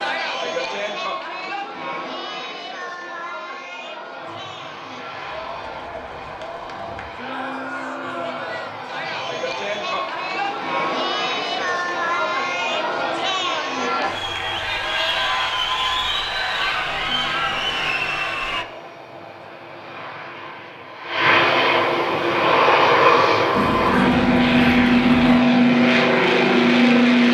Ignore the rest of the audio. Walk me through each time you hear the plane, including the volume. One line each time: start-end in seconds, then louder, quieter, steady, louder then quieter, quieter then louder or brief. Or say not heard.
4.2-27.2 louder.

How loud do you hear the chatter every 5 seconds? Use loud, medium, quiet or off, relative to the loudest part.
medium, medium, loud, loud, off, off.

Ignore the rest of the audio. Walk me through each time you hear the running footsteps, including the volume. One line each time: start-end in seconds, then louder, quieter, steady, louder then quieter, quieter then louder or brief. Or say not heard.
not heard.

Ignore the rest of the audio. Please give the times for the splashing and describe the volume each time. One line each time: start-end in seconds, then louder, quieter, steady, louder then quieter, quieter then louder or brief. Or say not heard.
not heard.